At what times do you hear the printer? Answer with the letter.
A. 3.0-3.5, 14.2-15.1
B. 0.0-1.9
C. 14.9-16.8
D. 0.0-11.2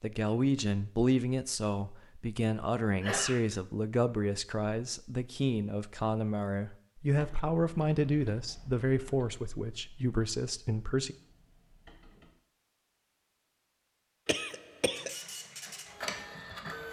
C.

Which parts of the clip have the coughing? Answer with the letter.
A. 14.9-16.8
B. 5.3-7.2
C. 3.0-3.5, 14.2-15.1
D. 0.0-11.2
C.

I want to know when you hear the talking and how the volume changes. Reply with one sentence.
You can hear the talking from 0.0 to 11.2 s, at a steady volume.